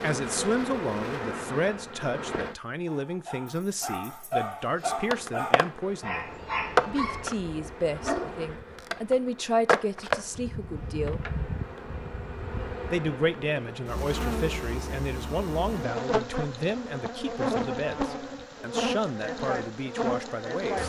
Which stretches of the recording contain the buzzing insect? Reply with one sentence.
You can hear the buzzing insect from 0.0 to 2.5 s and from 4.8 to 20.8 s.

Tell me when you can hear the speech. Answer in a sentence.
The speech can be heard from 0.0 to 6.2 s, from 6.8 to 11.2 s and from 12.9 to 20.8 s.